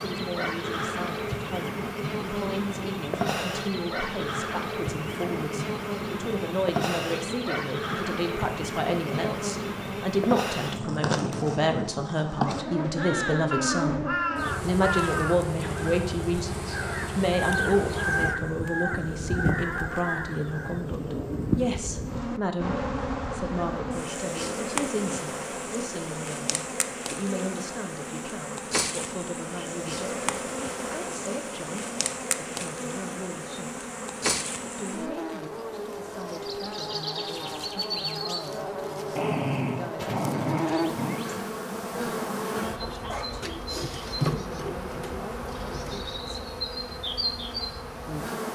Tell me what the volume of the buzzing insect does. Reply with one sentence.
The volume of the buzzing insect stays about the same.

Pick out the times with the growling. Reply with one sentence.
The growling can be heard from 39.1 to 41.1 s.